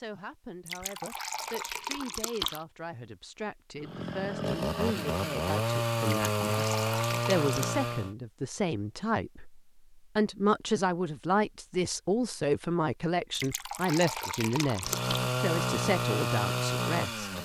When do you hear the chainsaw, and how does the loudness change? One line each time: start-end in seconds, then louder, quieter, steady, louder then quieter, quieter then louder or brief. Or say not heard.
3.8-8.2 steady
14.8-17.3 brief.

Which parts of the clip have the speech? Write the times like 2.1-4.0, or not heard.
0.0-17.3.